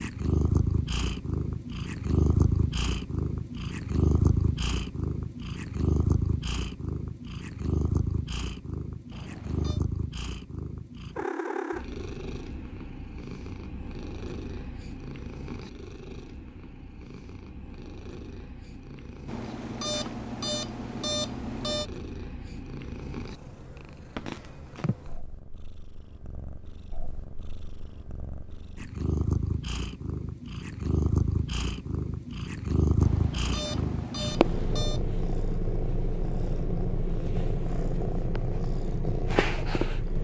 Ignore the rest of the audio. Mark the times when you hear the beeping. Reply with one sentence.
The beeping can be heard from 9.1 to 9.8 s, from 19.2 to 21.9 s and from 33.0 to 35.0 s.